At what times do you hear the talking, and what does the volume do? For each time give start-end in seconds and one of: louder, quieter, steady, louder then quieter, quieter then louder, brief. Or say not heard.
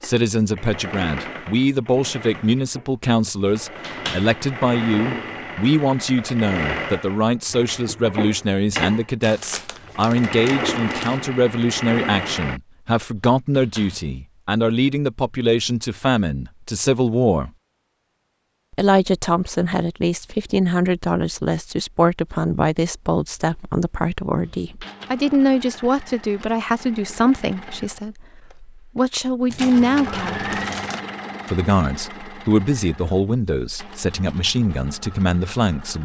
0.0-17.5 steady
18.7-30.4 steady
31.4-36.0 steady.